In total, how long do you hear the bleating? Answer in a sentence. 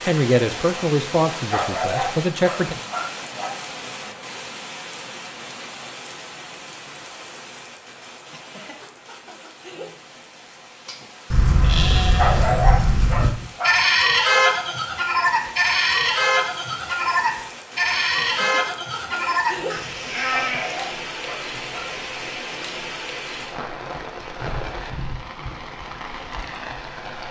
The bleating can be heard for 10 seconds in total.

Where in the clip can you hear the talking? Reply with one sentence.
The talking can be heard from 0.1 to 2.8 s.